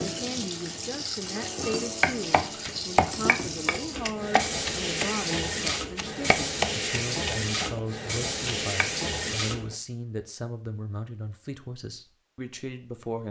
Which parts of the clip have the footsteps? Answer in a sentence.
The footsteps can't be heard in this clip.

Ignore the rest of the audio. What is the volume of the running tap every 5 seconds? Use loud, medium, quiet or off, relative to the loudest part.
loud, loud, off.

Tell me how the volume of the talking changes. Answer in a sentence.
The loudness of the talking stays about the same.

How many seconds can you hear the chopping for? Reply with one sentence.
The chopping can be heard for 6 seconds in total.